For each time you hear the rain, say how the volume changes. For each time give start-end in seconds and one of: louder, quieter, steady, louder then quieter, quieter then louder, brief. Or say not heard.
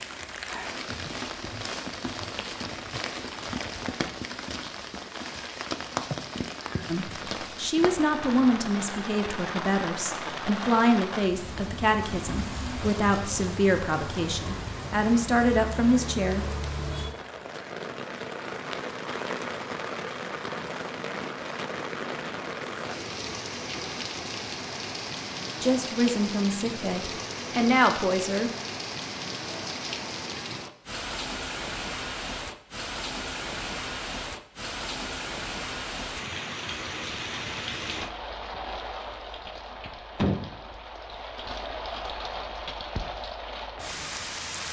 0.0-44.6 steady.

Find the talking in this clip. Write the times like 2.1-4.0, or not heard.
6.8-16.4, 25.6-28.5.